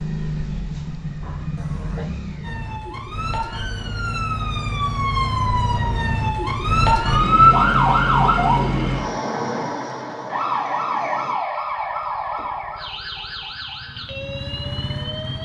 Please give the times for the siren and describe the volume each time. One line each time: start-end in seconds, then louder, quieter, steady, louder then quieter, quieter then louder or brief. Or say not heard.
2.4-15.4 louder then quieter.